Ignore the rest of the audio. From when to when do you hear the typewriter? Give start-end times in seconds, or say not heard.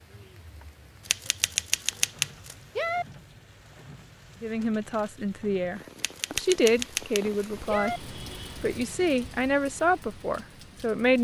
1.1-3.0, 6.0-8.0.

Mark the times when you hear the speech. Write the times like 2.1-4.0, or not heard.
4.4-11.1.